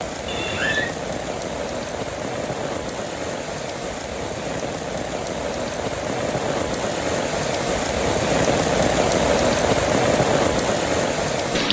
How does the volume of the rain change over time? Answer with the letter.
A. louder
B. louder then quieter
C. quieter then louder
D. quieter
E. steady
A.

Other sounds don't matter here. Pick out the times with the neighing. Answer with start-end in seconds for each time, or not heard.
0.2-0.9.